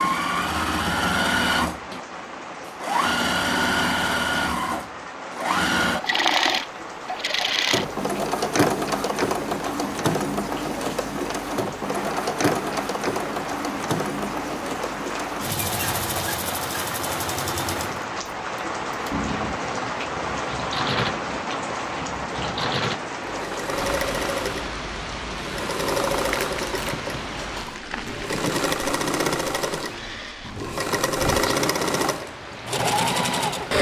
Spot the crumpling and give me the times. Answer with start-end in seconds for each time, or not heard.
26.2-27.1.